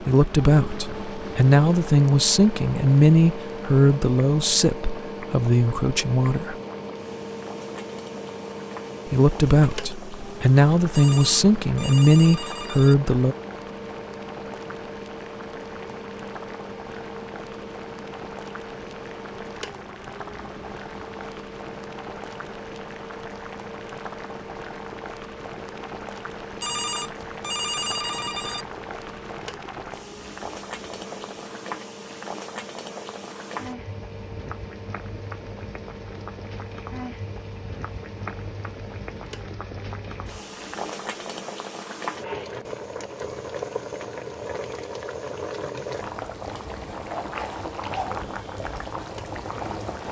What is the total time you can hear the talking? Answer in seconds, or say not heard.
11 s.